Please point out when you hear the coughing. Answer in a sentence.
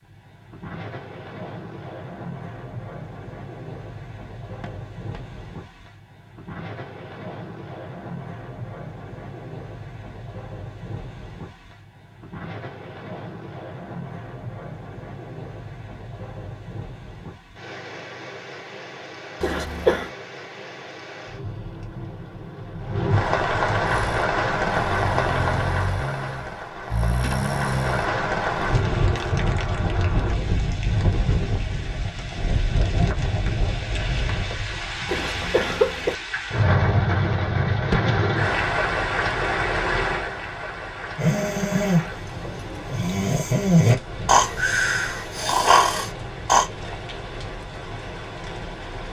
You can hear the coughing from 19.4 to 20.1 s and from 35.0 to 36.1 s.